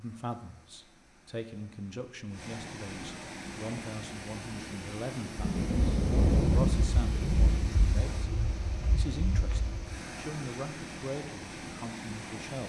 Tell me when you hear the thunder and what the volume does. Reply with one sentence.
The thunder can be heard from 5.3 to 10.0 s, getting quieter.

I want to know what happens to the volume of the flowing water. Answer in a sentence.
The volume of the flowing water goes up.